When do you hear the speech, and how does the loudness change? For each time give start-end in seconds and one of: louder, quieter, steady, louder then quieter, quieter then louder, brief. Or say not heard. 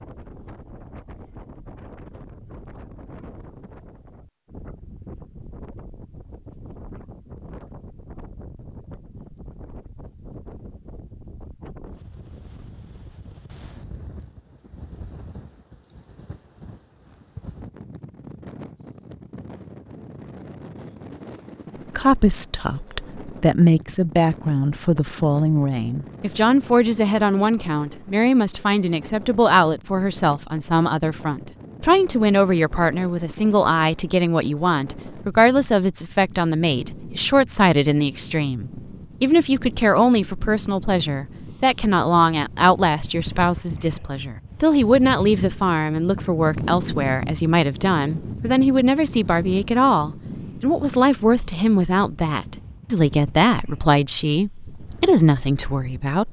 21.9-56.2 steady.